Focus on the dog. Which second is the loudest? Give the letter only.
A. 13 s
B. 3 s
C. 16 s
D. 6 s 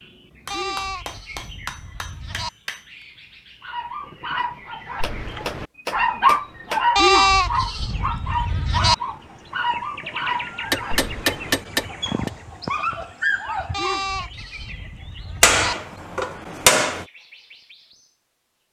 D.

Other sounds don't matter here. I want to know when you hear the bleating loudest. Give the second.
7 s.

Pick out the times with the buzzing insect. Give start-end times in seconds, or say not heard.
not heard.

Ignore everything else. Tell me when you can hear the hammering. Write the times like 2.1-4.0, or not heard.
0.5-2.8, 5.0-6.8, 10.6-12.3, 15.4-17.1.